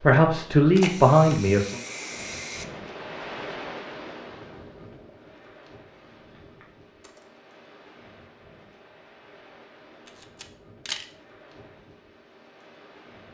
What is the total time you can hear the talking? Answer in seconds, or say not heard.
2 s.